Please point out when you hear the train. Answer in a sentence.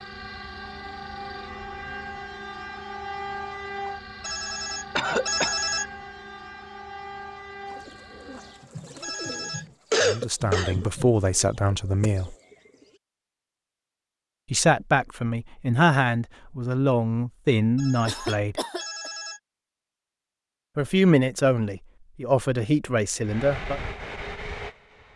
You can hear the train from 0.0 to 8.7 s and from 23.2 to 25.1 s.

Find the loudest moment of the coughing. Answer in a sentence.
The volume of the coughing peaks at 10 seconds.